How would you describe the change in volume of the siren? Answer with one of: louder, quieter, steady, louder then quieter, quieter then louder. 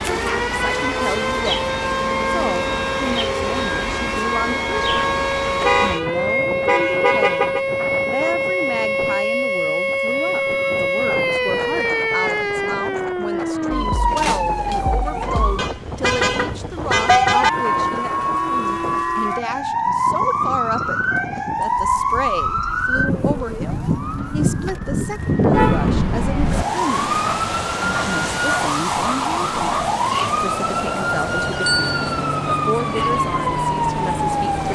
steady.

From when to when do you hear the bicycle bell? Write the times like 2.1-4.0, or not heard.
31.6-32.2.